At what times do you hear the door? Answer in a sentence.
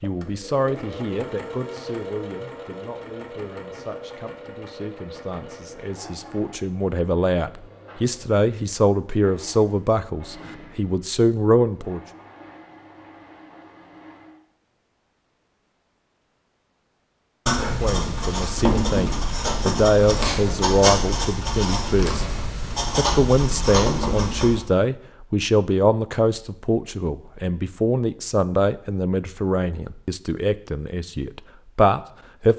The door can't be heard in this clip.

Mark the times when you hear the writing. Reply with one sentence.
You can hear the writing from 17.4 to 24.6 s.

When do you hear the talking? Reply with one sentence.
You can hear the talking from 0.0 to 12.0 s, from 17.8 to 22.2 s and from 22.9 to 32.5 s.